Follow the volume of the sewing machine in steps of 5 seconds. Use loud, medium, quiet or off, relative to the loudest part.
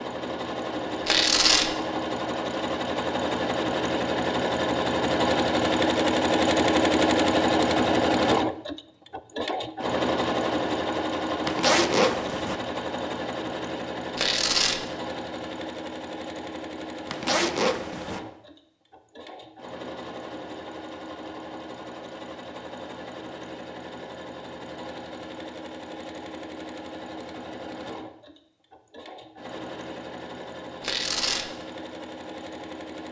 medium, loud, medium, quiet, quiet, quiet, quiet.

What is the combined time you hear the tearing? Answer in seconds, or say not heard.
2 s.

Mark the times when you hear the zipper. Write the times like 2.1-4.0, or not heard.
11.4-12.6, 17.1-18.2.